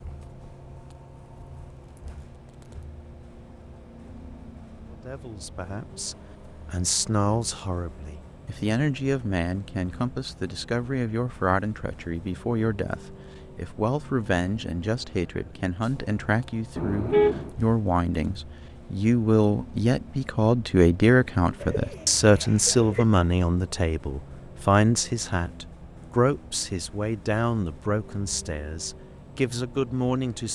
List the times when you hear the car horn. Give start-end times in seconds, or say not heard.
16.8-17.6.